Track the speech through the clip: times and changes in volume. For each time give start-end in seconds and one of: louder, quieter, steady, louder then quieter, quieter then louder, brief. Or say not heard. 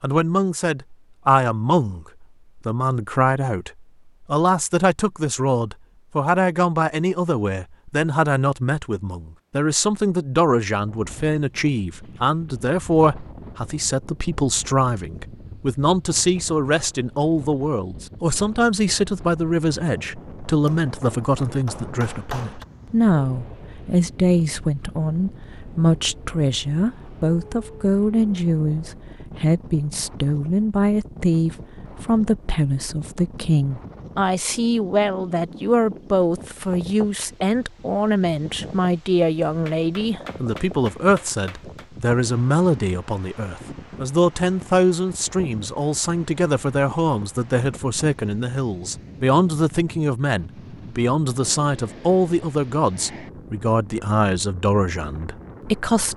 0.0-56.1 steady.